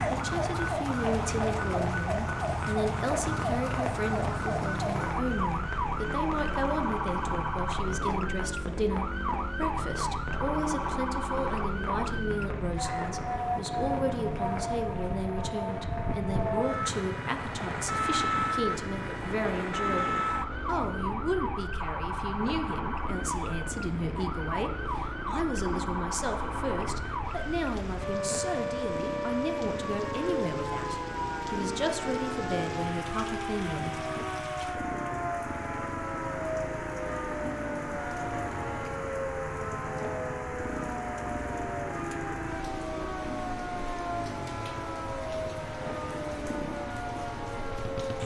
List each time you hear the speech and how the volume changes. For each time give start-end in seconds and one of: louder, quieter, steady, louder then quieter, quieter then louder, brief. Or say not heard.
0.1-34.0 steady.